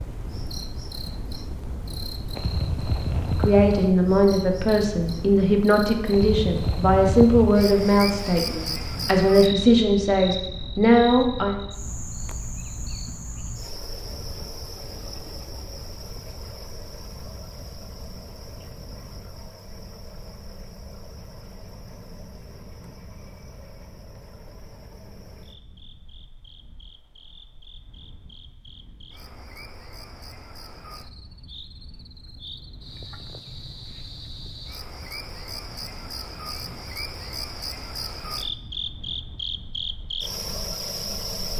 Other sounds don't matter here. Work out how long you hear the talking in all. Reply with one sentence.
You can hear the talking for 8 seconds altogether.